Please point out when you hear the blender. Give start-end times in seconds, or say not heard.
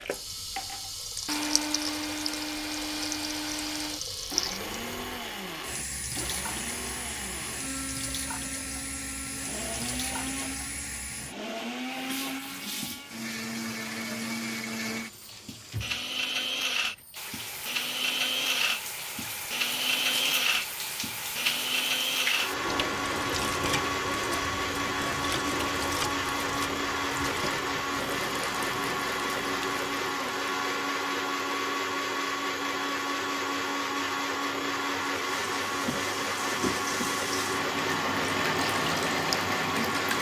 0.0-40.1.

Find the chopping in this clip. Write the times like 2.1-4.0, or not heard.
not heard.